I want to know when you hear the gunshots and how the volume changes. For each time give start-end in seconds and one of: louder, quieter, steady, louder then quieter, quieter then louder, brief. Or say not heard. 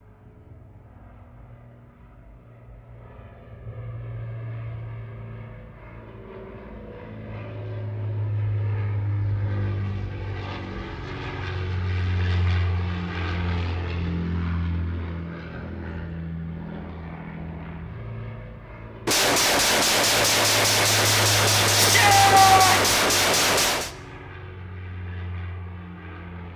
19.1-23.9 steady.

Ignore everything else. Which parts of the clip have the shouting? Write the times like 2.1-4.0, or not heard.
21.8-22.9.